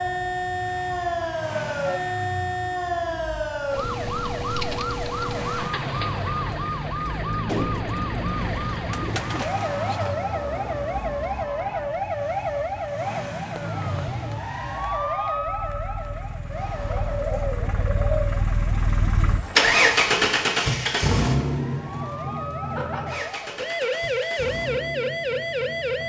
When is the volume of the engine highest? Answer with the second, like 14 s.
20 s.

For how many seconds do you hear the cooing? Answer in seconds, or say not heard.
4 s.